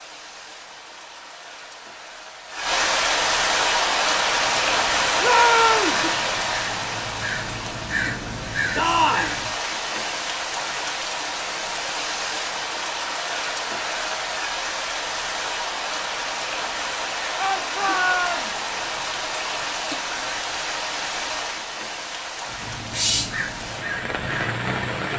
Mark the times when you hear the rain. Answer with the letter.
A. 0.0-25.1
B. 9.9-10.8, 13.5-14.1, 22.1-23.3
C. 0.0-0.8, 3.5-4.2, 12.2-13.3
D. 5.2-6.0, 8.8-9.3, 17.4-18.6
A.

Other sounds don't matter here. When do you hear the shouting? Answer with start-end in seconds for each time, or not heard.
5.2-6.0, 8.8-9.3, 17.4-18.6.